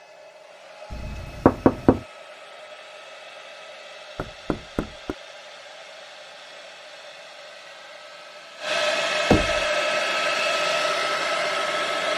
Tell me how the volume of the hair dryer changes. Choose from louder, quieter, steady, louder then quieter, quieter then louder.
louder.